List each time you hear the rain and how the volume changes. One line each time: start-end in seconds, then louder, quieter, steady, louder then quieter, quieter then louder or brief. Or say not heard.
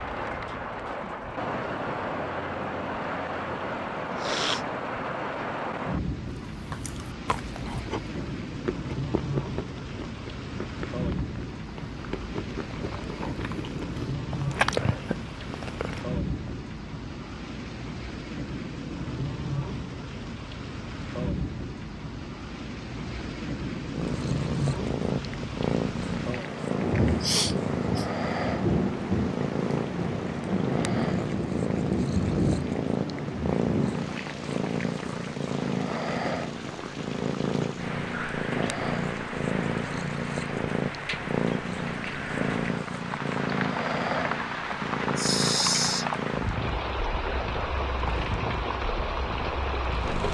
0.0-50.2 steady.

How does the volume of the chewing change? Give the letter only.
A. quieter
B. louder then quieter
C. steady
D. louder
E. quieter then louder
D.